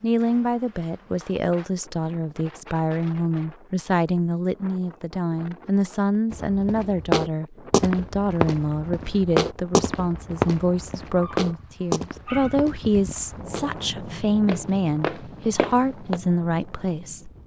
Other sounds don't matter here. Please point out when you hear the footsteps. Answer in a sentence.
You can hear the footsteps from 6.3 to 13.7 s and from 14.4 to 16.2 s.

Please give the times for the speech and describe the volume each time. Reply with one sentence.
The speech can be heard from 0.0 to 17.3 s, at a steady volume.